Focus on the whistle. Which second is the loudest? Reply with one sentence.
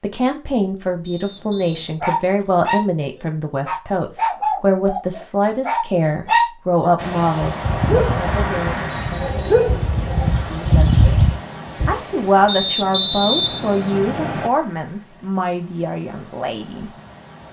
The volume of the whistle peaks at 13 seconds.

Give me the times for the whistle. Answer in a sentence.
The whistle can be heard from 1.1 to 2.0 s, from 8.9 to 9.8 s and from 12.4 to 14.5 s.